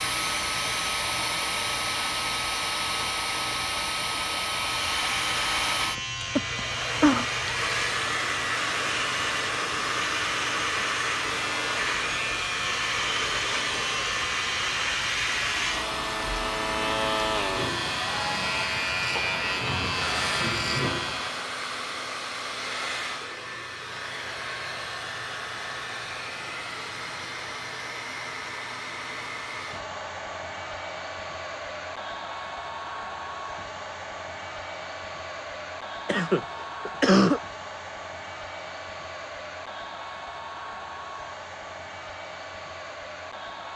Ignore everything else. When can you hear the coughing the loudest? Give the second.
37 s.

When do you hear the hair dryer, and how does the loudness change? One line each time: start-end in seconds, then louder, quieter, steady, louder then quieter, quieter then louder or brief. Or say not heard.
0.0-43.7 quieter.